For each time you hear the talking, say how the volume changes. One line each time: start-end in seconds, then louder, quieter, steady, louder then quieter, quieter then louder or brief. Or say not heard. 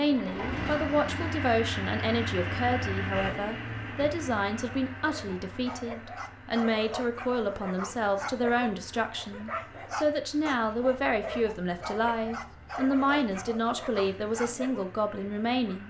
0.0-15.8 steady.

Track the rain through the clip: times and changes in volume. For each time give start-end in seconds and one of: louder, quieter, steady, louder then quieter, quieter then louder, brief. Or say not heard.
not heard.